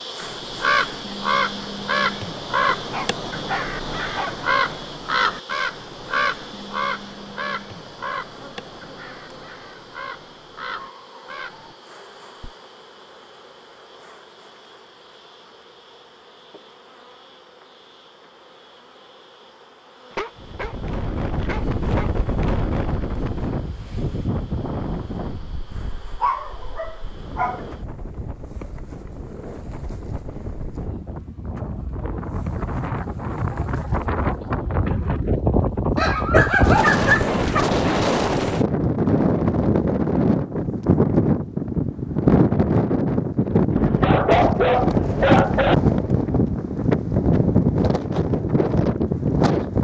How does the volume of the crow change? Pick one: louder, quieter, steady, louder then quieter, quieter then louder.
quieter.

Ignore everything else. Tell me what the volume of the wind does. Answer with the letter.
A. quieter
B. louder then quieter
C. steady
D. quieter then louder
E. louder
D.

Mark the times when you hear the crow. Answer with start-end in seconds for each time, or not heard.
0.2-11.8.